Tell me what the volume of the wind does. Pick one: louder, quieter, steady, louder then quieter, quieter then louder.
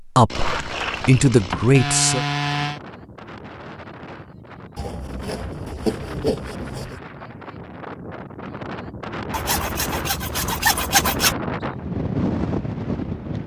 louder.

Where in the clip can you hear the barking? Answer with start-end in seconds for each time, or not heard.
not heard.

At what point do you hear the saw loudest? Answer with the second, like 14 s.
11 s.